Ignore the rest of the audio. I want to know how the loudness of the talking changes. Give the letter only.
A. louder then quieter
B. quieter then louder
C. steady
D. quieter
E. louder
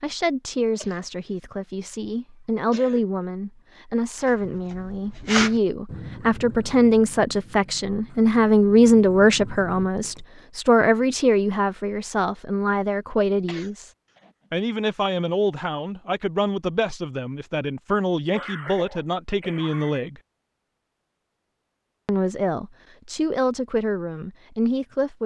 A.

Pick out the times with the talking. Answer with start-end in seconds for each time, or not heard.
0.0-13.9, 14.5-20.2, 22.1-25.2.